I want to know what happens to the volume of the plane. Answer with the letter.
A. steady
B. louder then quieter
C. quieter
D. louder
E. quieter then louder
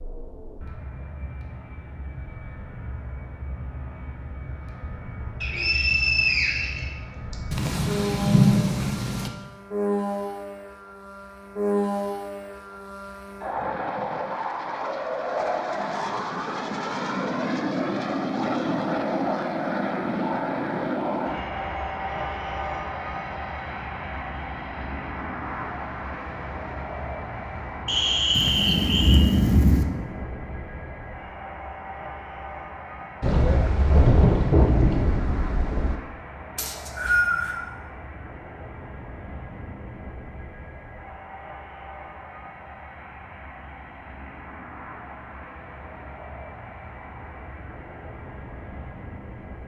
B.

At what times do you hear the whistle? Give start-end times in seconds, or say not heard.
5.4-7.3, 27.9-29.2, 36.5-37.6.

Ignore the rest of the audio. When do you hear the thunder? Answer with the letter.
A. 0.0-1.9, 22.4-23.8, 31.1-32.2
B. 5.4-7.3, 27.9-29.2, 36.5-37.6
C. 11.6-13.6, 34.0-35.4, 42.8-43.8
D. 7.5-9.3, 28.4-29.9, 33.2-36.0
D.